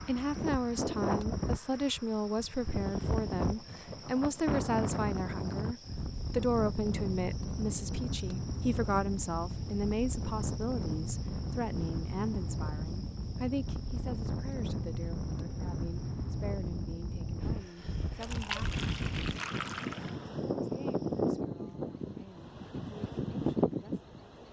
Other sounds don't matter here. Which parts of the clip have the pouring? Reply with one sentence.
You can hear the pouring from 18.2 to 20.1 s.